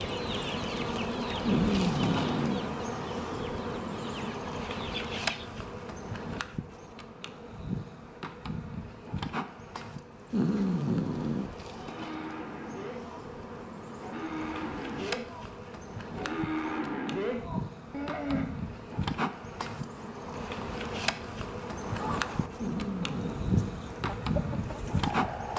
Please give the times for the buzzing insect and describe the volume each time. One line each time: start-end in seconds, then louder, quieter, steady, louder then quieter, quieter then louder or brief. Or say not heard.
0.0-25.5 quieter then louder.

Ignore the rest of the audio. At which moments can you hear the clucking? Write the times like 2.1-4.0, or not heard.
0.0-5.5, 21.6-25.5.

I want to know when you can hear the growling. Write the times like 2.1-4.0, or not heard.
1.4-2.6, 10.3-11.5, 22.6-23.8.